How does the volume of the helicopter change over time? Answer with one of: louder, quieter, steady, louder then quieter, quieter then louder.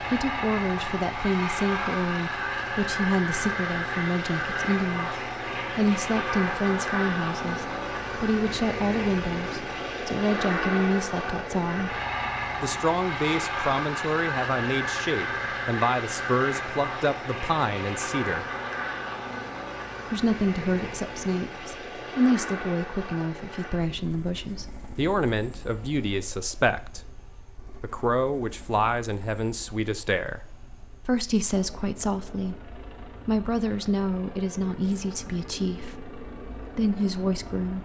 quieter.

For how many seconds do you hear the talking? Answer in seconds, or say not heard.
34 s.